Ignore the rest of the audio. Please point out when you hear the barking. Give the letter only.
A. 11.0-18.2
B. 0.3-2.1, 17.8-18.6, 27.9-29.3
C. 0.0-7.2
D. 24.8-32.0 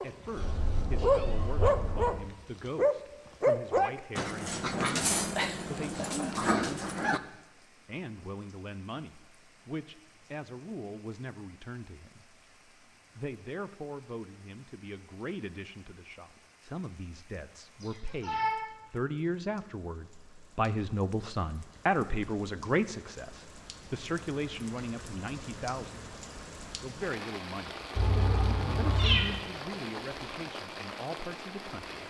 C.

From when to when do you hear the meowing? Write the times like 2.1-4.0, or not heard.
0.3-2.1, 17.8-18.6, 27.9-29.3.